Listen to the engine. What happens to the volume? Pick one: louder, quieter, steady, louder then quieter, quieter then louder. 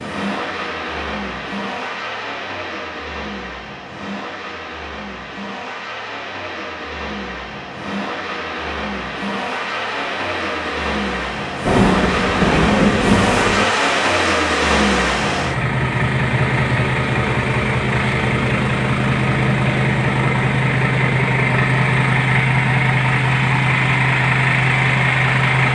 louder.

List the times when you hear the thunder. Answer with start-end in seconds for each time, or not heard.
11.7-13.7.